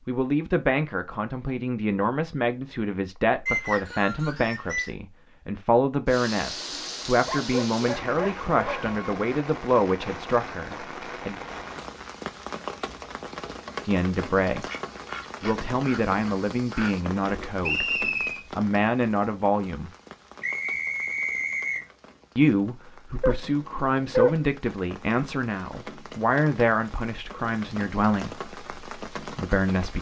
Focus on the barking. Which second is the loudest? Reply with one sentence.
The loudest moment of the barking is at 24 seconds.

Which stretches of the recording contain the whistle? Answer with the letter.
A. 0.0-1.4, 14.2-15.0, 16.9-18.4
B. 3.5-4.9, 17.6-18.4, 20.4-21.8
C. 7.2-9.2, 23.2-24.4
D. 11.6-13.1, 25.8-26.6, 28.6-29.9
B.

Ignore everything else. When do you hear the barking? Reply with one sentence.
You can hear the barking from 7.2 to 9.2 s and from 23.2 to 24.4 s.